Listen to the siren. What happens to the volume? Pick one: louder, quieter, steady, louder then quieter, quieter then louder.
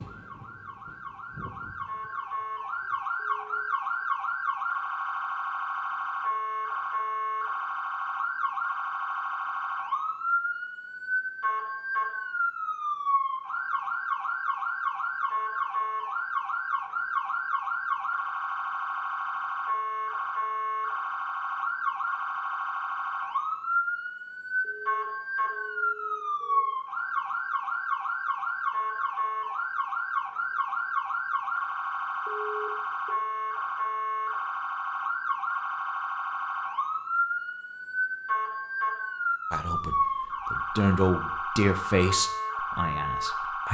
steady.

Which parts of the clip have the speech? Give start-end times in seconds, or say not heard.
39.5-43.6.